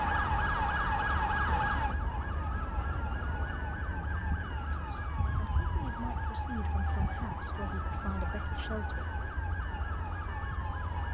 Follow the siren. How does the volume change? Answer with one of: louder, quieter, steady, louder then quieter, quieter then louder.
quieter.